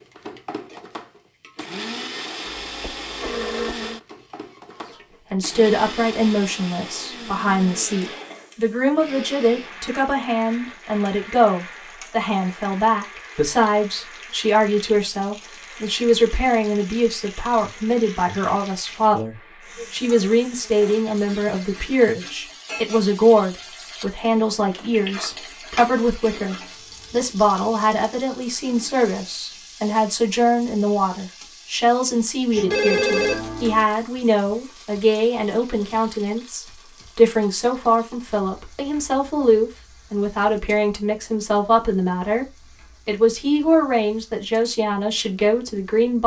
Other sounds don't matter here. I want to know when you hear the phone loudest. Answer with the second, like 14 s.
33 s.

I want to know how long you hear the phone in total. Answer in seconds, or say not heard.
3 s.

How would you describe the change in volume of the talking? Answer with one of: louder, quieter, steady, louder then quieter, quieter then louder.
steady.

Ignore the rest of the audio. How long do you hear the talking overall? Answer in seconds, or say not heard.
40 s.